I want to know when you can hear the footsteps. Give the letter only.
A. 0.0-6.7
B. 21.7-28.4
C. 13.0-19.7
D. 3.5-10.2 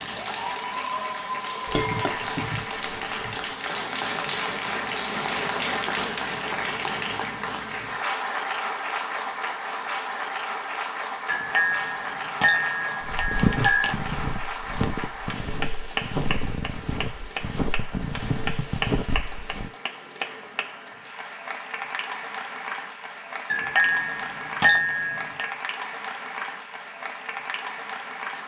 C.